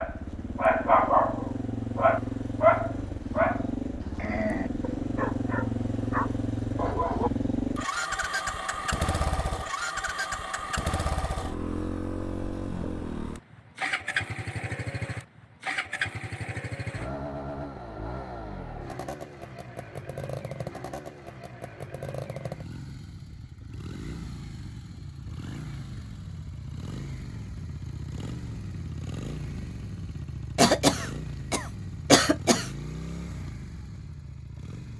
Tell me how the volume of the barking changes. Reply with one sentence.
The volume of the barking goes down.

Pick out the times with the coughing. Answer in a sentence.
You can hear the coughing from 30.6 to 32.7 s.